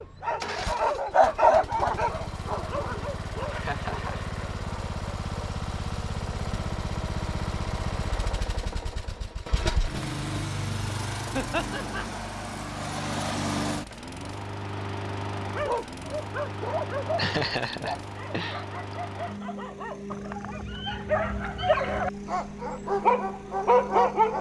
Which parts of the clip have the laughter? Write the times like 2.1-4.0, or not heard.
3.5-4.2, 11.3-12.1, 17.1-18.9.